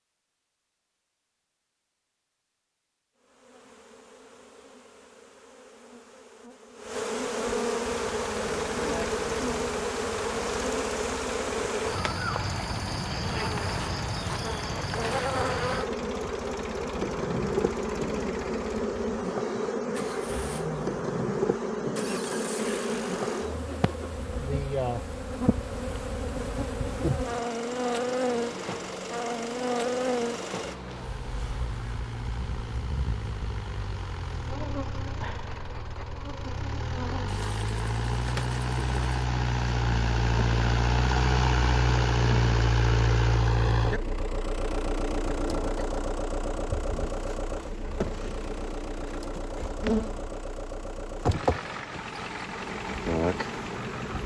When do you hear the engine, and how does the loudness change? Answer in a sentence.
The engine can be heard from 7.8 to 54.2 s, getting louder then quieter.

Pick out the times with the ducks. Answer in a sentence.
The ducks can't be heard in this clip.